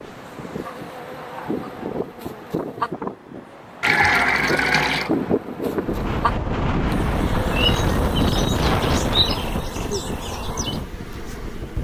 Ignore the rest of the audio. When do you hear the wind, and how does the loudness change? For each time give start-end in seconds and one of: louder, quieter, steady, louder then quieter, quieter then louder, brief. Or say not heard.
0.0-11.7 louder then quieter.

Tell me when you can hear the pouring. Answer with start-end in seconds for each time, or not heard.
3.8-5.1.